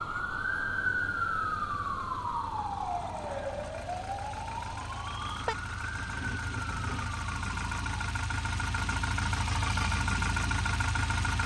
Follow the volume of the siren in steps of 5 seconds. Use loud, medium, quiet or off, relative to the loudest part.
loud, medium, off.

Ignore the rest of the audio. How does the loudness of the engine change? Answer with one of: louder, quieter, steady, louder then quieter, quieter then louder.
louder.